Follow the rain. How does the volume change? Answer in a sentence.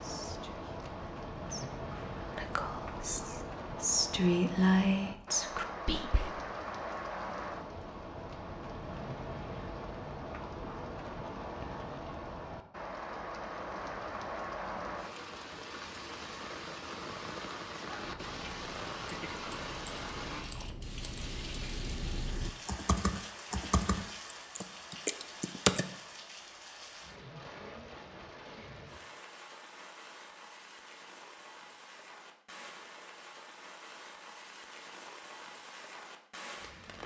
The loudness of the rain goes down.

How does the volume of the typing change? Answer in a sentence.
The volume of the typing goes up.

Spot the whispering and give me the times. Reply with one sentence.
You can hear the whispering from 0.0 to 6.3 s.